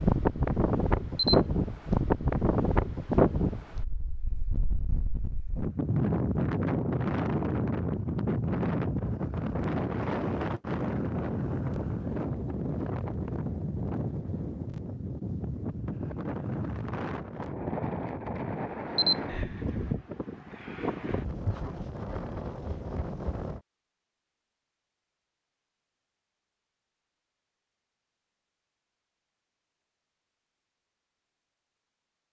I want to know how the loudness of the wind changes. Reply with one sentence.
The loudness of the wind goes down.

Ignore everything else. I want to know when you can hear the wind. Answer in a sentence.
The wind can be heard from 0.0 to 23.6 s.